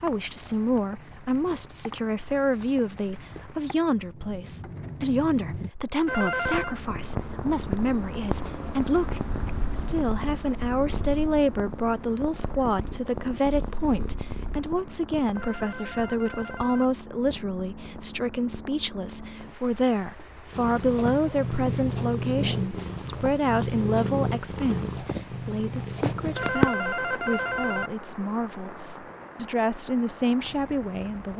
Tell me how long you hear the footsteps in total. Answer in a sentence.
You can't hear the footsteps here.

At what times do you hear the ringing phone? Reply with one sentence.
The ringing phone can be heard from 6.0 to 6.8 s, from 15.3 to 16.9 s and from 26.4 to 27.9 s.